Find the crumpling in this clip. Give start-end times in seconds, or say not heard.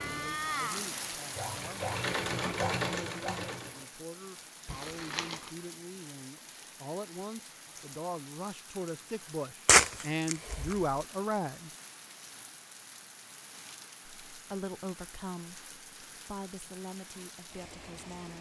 4.7-5.5, 9.7-10.8.